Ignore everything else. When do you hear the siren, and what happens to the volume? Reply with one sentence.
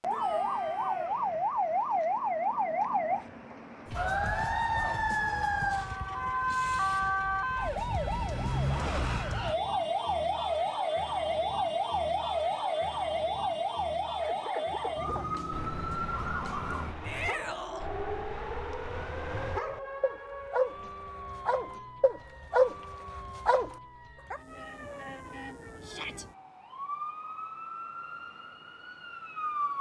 You can hear the siren from 0.0 to 29.7 s, getting quieter.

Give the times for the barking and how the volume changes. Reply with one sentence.
The barking can be heard from 14.2 to 24.4 s, getting louder.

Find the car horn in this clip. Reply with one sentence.
You can't hear the car horn here.